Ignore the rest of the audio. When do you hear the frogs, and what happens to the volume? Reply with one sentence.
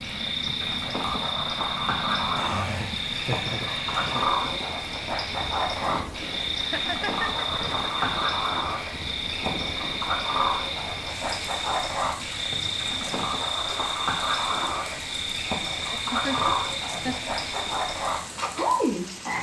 The frogs can be heard from 0.0 to 19.3 s, at a steady volume.